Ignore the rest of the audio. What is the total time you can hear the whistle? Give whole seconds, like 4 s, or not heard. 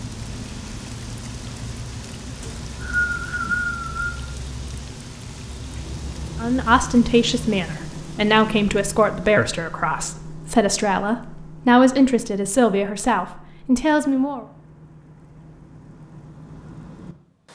2 s.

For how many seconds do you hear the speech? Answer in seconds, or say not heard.
8 s.